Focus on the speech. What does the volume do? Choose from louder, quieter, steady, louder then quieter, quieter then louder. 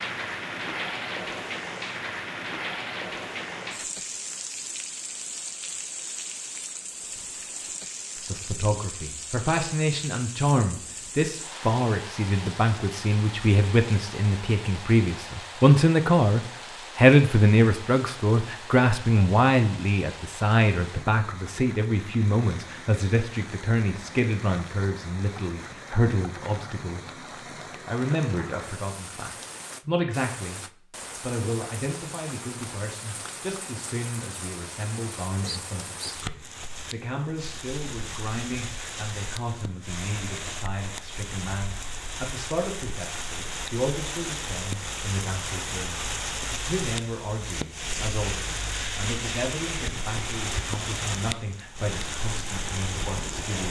quieter.